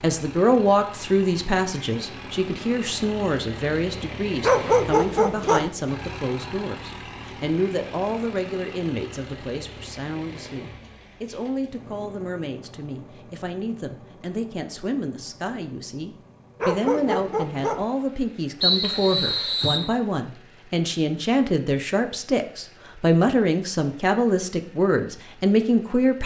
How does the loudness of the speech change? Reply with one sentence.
The loudness of the speech goes down, then up.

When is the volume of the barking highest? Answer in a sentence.
The volume of the barking peaks at 5 seconds.